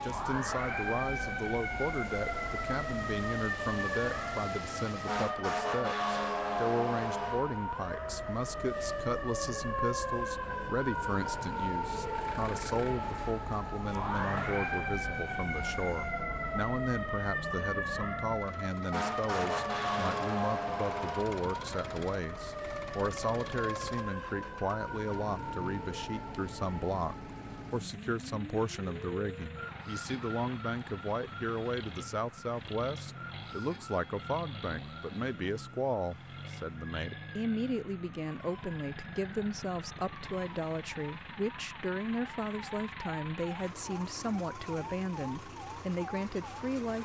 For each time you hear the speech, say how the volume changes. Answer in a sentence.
You can hear the speech from 0.0 to 46.9 s, at a steady volume.